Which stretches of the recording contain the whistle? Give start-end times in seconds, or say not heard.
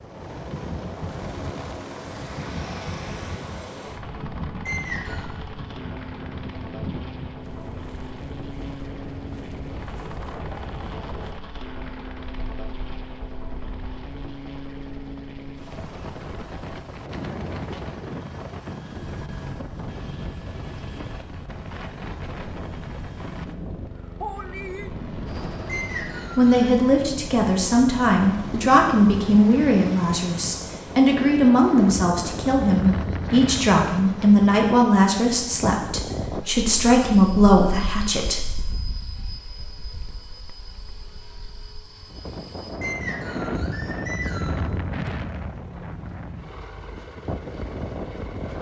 4.7-5.3, 25.6-26.7, 42.8-44.6.